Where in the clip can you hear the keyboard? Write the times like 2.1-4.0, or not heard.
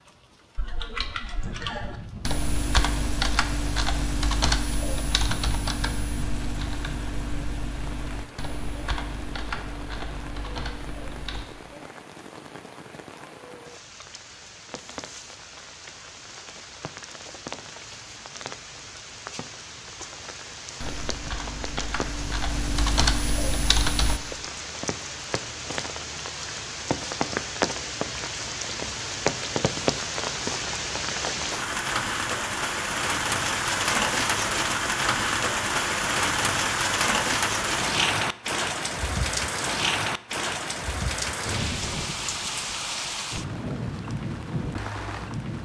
0.6-11.4, 20.8-24.2.